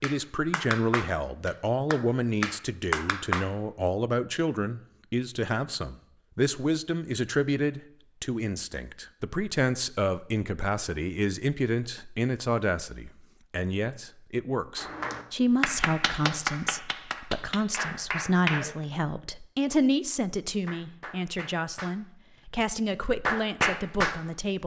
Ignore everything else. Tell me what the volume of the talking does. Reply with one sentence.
The loudness of the talking stays about the same.